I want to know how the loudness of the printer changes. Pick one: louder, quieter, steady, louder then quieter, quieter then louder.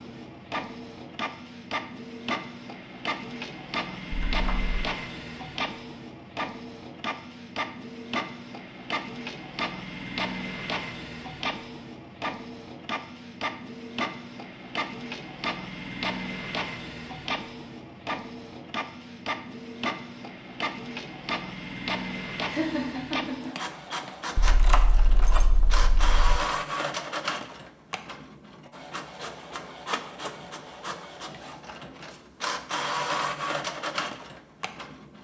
steady.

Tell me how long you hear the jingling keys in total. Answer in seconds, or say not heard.
3 s.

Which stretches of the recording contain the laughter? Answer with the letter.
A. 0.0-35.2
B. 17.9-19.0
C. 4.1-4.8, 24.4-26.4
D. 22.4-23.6
D.